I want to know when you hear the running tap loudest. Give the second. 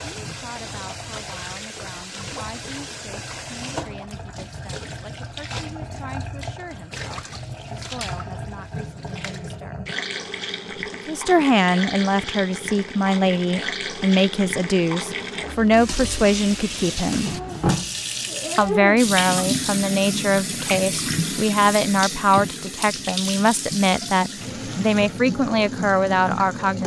19 s.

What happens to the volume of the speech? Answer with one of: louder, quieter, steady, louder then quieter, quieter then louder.
louder.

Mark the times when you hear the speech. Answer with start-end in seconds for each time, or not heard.
0.2-9.8, 10.9-17.4, 18.6-26.8.